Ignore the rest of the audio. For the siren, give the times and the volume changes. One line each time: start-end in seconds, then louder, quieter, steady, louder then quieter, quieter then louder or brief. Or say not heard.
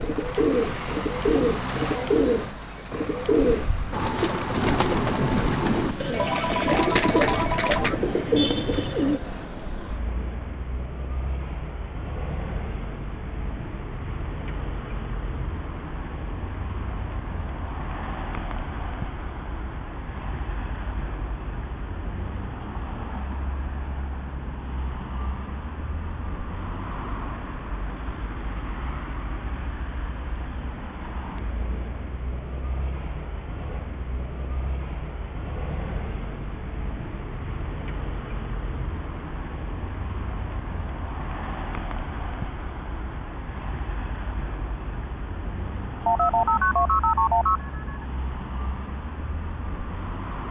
not heard.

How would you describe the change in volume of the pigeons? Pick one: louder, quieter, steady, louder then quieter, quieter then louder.
steady.